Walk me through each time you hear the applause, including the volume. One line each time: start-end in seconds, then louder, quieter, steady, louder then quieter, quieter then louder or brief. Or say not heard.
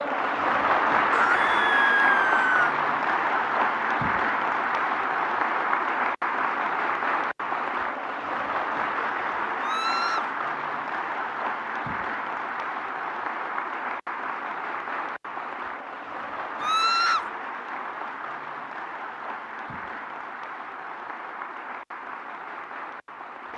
0.0-23.5 quieter.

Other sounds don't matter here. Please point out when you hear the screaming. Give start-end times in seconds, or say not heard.
1.1-2.8, 9.6-10.3, 16.6-17.2.